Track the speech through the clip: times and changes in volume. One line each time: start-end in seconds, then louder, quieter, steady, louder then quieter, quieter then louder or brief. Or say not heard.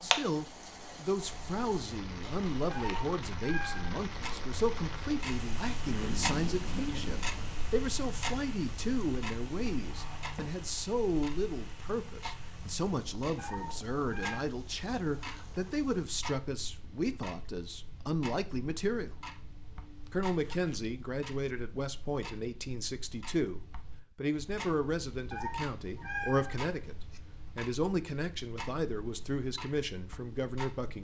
0.0-19.1 steady
20.1-30.9 steady.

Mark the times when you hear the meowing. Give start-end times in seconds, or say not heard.
2.7-4.0, 13.3-14.4, 25.3-27.2.